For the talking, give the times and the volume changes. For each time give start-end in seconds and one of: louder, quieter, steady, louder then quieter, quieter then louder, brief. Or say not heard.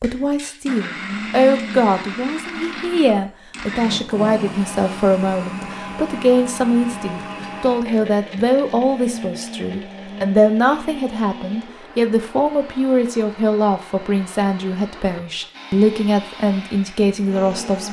0.0-17.8 steady.